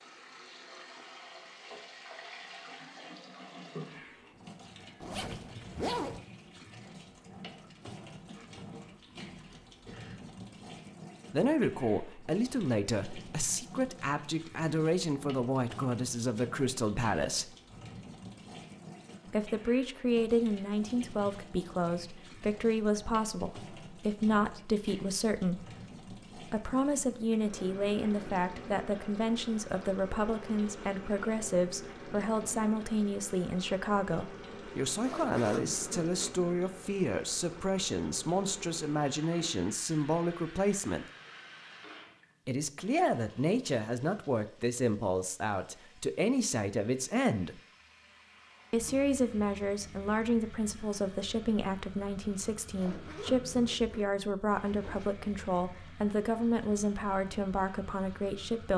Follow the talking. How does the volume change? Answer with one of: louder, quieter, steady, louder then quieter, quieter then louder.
steady.